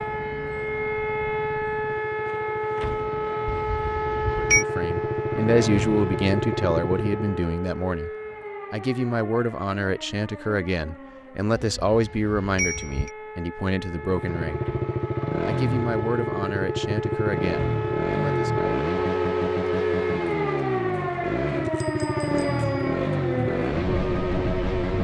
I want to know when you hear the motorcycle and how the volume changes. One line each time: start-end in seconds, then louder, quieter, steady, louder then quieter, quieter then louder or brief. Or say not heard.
0.0-7.3 louder
13.9-24.9 steady.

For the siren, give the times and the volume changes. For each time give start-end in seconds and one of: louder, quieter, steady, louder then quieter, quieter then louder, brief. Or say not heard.
0.0-24.9 quieter then louder.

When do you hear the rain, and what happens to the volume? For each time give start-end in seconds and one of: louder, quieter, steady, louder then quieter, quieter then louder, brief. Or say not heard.
not heard.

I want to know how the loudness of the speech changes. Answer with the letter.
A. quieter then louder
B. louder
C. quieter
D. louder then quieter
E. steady
C.